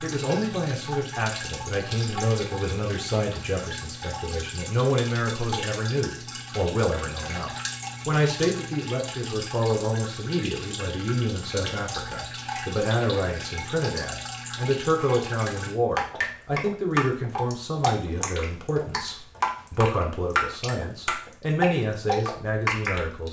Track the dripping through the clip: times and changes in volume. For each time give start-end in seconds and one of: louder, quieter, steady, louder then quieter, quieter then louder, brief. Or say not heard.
0.0-23.2 louder.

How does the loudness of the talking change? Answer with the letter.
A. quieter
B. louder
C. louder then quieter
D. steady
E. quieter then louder
D.